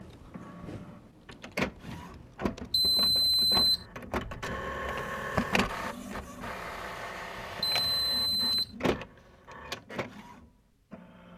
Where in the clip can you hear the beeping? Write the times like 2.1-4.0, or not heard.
2.7-3.9, 7.6-8.8.